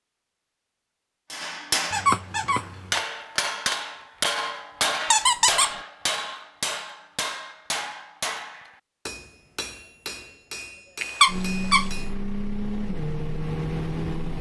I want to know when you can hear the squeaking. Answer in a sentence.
You can hear the squeaking from 1.9 to 3.0 s, from 5.1 to 5.8 s and from 11.0 to 11.9 s.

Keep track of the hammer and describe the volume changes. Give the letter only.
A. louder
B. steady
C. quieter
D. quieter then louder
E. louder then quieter
C.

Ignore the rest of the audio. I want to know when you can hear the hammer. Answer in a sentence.
The hammer can be heard from 1.3 to 12.2 s.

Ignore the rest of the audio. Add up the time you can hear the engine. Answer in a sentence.
The engine can be heard for 3 seconds in total.